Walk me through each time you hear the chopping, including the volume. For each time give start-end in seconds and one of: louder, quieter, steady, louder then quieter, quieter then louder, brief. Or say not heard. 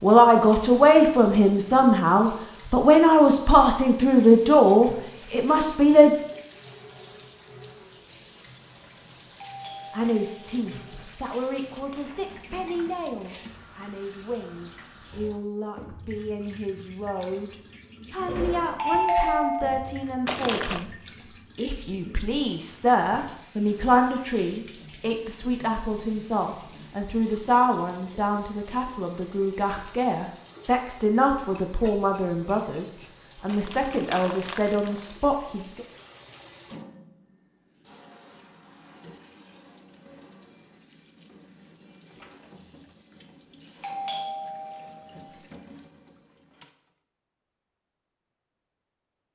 not heard.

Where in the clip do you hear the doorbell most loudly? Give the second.
19 s.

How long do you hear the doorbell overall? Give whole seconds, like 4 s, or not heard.
5 s.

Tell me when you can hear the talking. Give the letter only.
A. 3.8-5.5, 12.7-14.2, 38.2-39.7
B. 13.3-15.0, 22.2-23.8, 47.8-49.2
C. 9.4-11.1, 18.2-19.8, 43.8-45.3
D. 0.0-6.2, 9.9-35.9
D.